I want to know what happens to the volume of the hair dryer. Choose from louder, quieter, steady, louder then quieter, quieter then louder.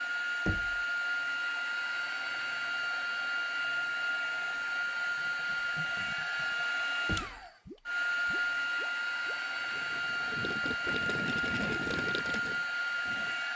steady.